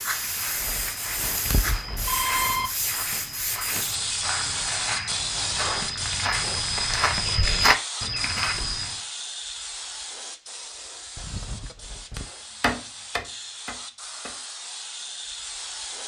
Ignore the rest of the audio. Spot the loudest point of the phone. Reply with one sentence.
The loudest moment of the phone is at 2 seconds.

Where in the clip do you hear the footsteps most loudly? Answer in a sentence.
The volume of the footsteps peaks at 8 seconds.